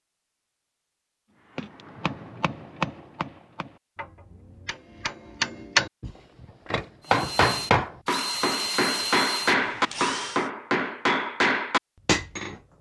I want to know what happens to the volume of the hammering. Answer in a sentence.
The volume of the hammering goes up.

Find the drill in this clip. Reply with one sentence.
The drill can be heard from 7.0 to 10.5 s.